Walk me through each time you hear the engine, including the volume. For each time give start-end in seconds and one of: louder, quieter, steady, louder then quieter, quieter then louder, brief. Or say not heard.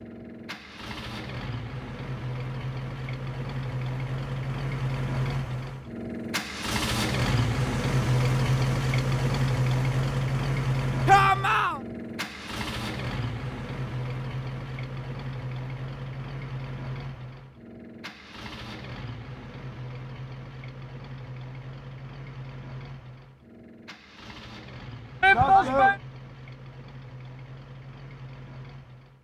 0.0-29.1 louder then quieter.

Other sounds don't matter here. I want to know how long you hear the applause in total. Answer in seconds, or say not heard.
not heard.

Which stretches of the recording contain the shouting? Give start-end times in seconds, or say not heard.
11.1-11.8, 25.2-25.9.